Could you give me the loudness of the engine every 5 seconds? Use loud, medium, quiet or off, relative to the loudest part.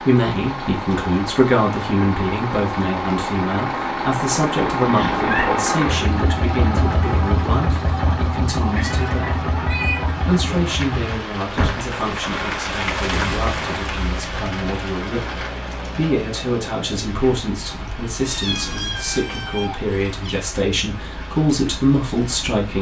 loud, loud, medium, quiet, quiet.